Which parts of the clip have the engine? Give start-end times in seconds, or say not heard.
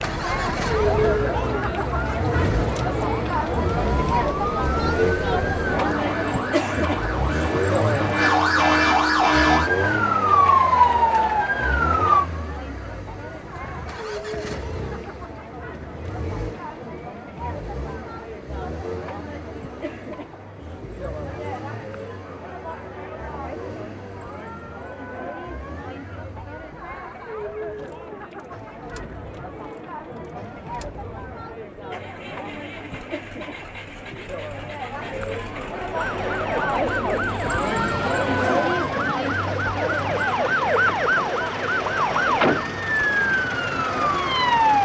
0.0-44.7.